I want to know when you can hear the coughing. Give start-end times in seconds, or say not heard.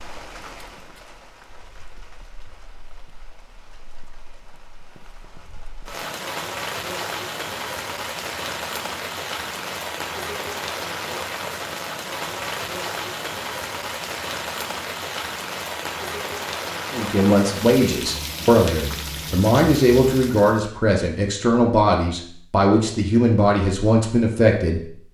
not heard.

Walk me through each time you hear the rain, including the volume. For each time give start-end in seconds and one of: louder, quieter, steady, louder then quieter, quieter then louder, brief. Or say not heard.
0.0-20.6 louder.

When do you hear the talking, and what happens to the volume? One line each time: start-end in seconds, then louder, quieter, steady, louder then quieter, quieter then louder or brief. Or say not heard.
16.9-25.0 steady.